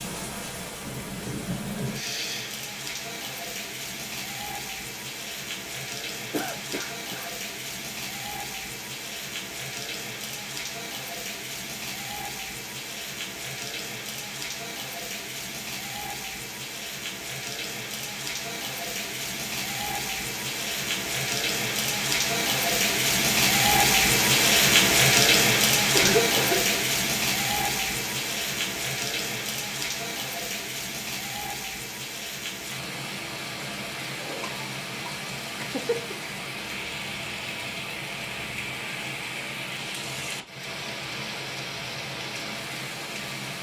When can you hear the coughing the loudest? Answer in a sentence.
The volume of the coughing peaks at 26 seconds.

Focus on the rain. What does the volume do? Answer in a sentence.
The volume of the rain goes up, then down.